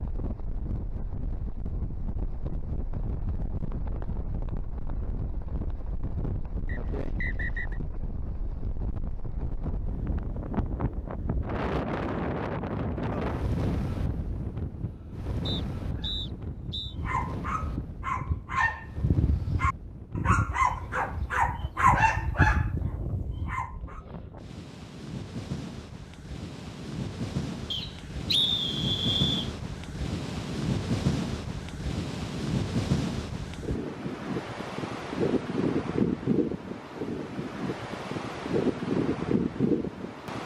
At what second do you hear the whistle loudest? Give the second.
28 s.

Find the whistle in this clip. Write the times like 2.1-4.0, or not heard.
6.7-7.8, 15.4-16.9, 27.7-29.5.